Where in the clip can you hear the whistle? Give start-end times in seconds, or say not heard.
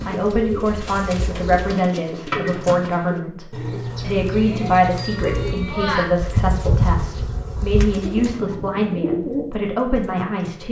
not heard.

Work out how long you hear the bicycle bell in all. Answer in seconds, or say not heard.
2 s.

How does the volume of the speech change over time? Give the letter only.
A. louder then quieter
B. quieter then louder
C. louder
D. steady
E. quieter
D.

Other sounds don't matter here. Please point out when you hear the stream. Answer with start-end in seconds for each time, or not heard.
not heard.